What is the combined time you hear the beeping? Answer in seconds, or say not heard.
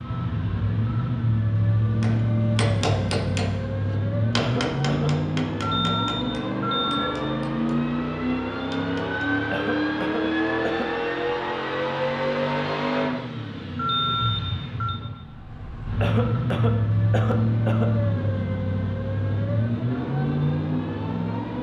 3 s.